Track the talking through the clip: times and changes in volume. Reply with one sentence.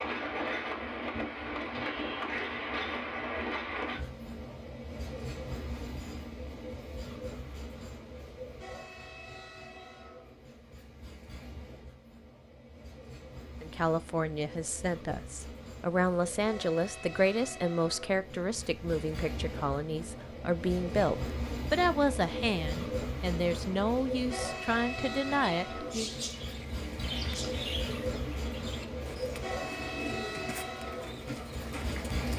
The talking can be heard from 13.6 to 26.1 s, at a steady volume.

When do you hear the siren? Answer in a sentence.
You can't hear the siren here.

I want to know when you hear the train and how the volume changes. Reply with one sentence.
The train can be heard from 0.0 to 32.3 s, getting quieter then louder.